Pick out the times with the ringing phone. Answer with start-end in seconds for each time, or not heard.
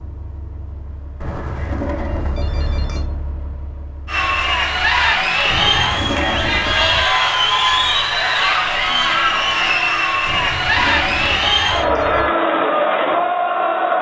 1.2-3.1, 5.5-7.0, 10.2-12.3.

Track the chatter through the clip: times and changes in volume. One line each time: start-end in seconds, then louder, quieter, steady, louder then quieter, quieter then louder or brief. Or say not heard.
4.0-13.9 steady.